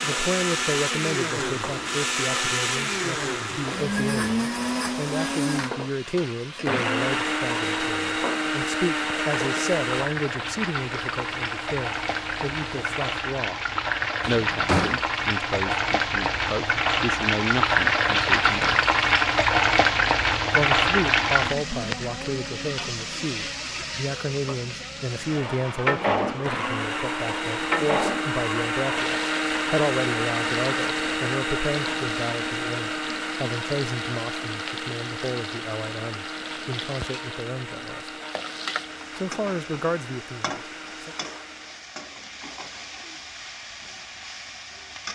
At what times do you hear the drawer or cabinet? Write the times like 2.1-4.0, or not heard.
14.3-15.1.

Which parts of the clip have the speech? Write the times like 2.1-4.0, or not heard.
0.0-13.6, 14.2-18.8, 20.5-38.1, 39.1-41.1.